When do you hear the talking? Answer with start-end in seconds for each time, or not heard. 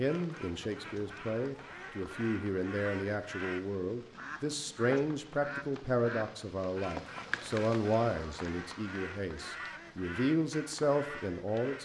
0.0-11.8.